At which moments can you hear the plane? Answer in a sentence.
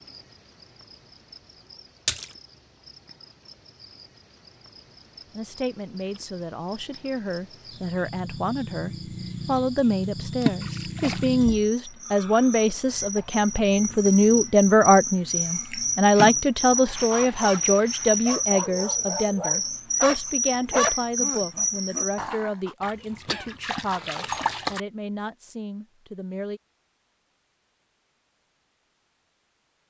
The plane can't be heard in this clip.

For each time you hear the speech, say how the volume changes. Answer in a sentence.
You can hear the speech from 5.3 to 26.6 s, getting louder then quieter.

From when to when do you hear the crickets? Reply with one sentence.
You can hear the crickets from 0.0 to 22.2 s.